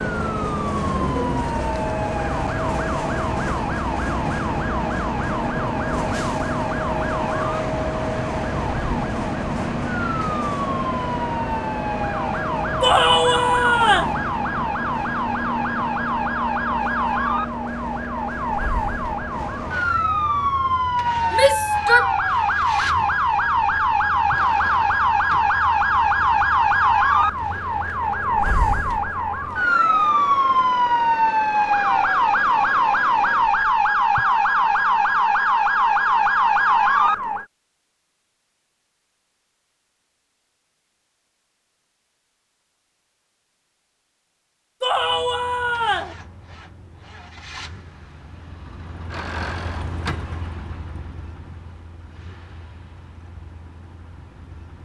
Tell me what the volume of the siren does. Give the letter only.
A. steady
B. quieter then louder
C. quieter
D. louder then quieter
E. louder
E.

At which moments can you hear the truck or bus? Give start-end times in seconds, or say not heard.
0.0-33.6, 44.9-54.7.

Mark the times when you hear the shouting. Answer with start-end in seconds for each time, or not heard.
12.8-14.2, 21.3-22.1, 44.8-46.1.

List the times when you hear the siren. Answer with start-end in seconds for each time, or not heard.
0.2-37.5.